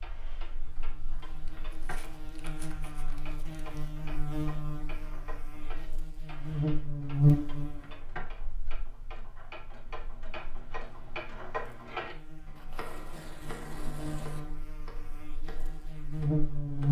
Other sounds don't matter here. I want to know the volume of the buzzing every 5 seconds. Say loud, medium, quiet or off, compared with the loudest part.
quiet, loud, quiet, loud.